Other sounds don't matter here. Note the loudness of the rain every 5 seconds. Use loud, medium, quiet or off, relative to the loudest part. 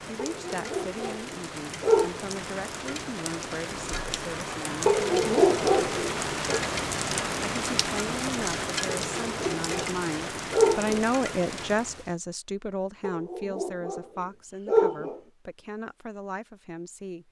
medium, loud, medium, off.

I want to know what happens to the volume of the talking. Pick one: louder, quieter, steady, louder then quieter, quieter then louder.
louder then quieter.